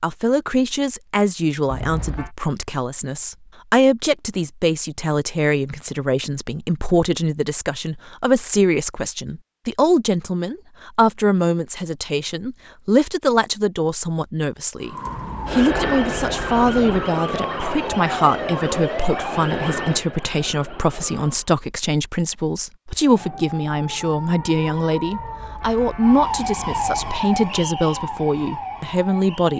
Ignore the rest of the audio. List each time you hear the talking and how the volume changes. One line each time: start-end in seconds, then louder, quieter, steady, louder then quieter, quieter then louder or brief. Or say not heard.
0.0-29.5 steady.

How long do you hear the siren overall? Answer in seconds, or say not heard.
13 s.